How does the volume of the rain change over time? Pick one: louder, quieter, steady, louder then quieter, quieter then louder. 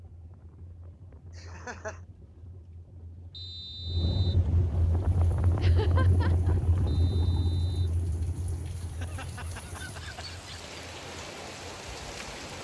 louder.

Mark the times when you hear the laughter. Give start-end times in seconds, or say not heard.
1.4-2.0, 5.6-6.6, 8.8-10.7.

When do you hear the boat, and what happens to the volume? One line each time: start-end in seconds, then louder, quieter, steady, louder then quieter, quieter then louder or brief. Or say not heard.
0.0-12.6 louder then quieter.